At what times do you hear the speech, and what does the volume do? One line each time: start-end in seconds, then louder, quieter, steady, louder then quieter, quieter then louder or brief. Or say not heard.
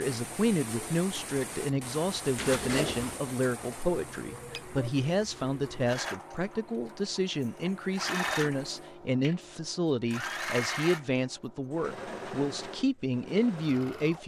0.0-14.2 steady.